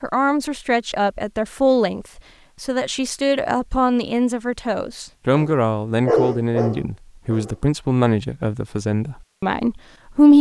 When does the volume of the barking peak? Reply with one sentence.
The volume of the barking peaks at 6 seconds.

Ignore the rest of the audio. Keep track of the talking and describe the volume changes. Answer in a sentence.
The loudness of the talking stays about the same.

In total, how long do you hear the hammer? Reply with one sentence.
The hammer can't be heard in this clip.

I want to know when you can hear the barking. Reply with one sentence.
You can hear the barking from 5.3 to 7.7 s.